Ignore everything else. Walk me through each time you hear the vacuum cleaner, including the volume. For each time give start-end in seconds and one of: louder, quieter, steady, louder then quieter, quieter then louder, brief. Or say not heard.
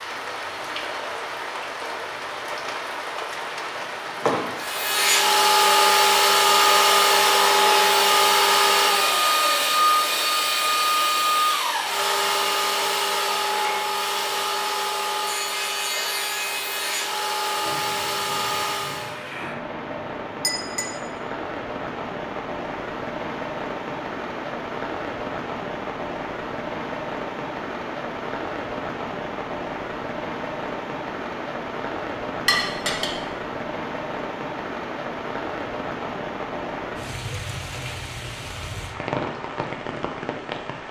4.5-19.1 quieter.